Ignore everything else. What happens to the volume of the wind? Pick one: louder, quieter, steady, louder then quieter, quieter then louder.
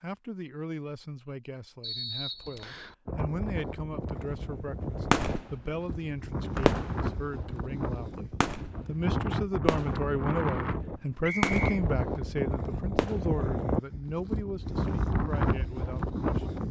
louder.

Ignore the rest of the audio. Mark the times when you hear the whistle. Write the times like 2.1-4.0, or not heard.
1.8-3.0, 6.5-7.1, 11.2-11.7.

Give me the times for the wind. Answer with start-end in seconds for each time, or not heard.
3.0-16.6.